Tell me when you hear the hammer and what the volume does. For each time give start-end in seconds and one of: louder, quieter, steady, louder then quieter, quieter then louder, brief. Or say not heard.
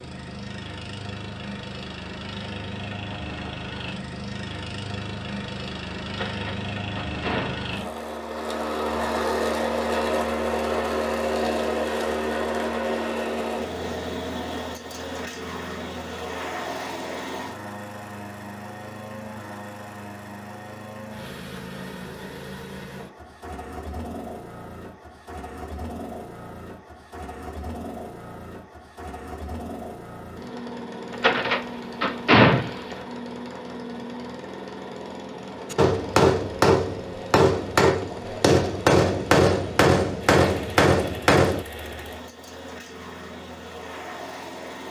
35.7-41.6 steady.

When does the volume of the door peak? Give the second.
32 s.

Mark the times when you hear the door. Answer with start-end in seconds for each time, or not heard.
6.0-7.7, 31.1-33.0.